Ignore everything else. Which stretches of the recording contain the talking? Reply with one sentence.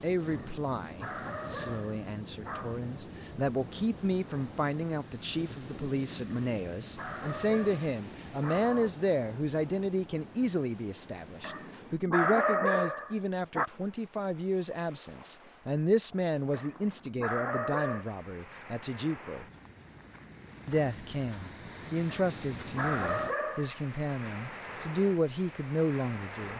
You can hear the talking from 0.0 to 19.4 s and from 20.6 to 26.5 s.